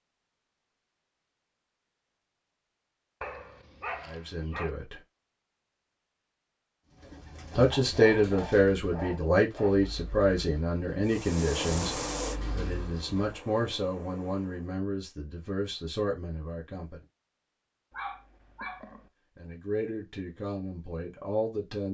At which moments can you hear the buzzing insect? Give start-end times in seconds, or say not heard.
11.1-14.8.